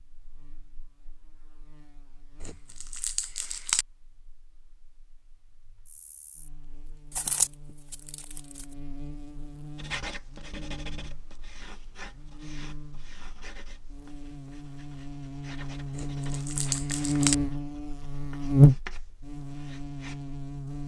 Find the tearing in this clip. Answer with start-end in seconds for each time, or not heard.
2.4-3.9, 7.1-8.7, 15.9-17.4.